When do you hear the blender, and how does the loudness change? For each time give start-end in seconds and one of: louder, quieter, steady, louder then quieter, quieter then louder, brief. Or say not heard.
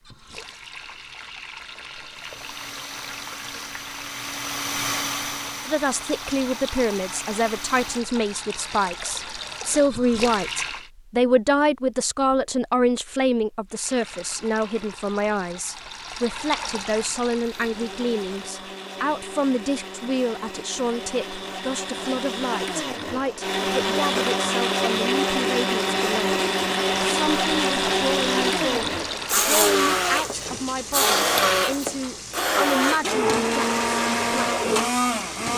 2.1-8.0 louder then quieter
17.4-35.5 louder.